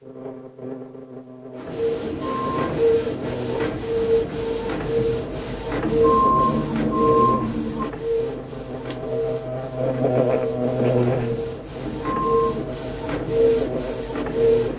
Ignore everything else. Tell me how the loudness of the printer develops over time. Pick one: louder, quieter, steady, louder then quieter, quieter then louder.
quieter then louder.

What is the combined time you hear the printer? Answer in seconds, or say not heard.
13 s.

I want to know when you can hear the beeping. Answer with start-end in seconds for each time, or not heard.
2.0-2.8, 5.8-7.8, 11.8-12.7.